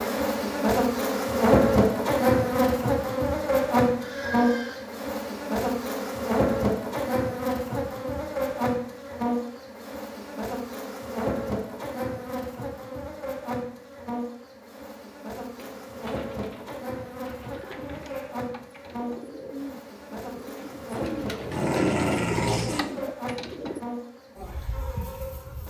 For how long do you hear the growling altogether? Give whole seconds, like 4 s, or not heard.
2 s.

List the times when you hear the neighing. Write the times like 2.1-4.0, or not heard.
4.0-4.8.